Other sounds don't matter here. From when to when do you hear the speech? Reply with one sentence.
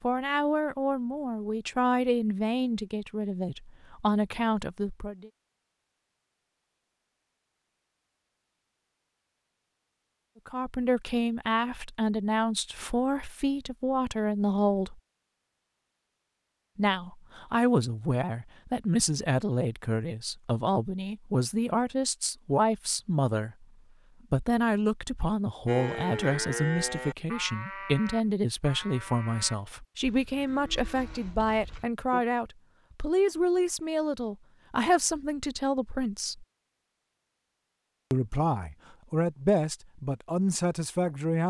You can hear the speech from 0.0 to 5.3 s, from 10.4 to 15.0 s, from 16.8 to 23.6 s, from 24.3 to 36.5 s and from 38.1 to 41.4 s.